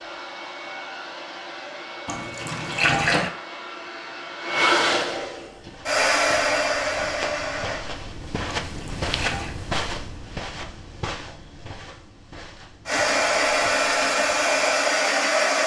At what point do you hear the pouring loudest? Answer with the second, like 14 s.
3 s.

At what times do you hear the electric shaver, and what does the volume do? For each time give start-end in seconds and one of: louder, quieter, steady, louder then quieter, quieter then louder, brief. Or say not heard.
not heard.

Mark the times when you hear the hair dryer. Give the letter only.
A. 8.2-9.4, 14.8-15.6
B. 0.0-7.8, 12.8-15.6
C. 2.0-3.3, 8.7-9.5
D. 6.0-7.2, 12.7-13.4
B.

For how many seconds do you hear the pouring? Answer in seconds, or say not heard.
2 s.